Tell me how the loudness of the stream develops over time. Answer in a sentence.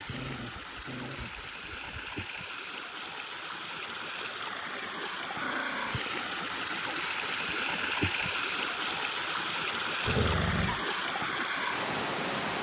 The volume of the stream goes up.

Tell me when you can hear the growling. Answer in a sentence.
You can hear the growling from 0.1 to 2.2 s, from 5.4 to 6.0 s and from 10.1 to 10.8 s.